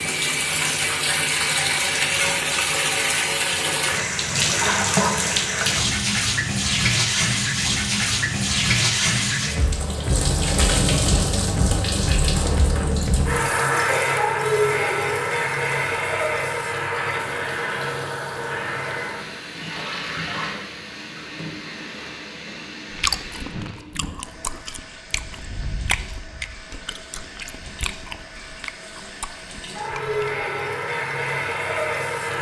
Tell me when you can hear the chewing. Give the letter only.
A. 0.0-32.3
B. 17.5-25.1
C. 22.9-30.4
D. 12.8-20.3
C.